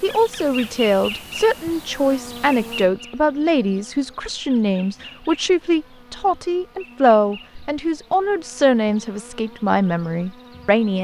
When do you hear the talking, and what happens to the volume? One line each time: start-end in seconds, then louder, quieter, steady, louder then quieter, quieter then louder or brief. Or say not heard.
0.0-10.9 steady.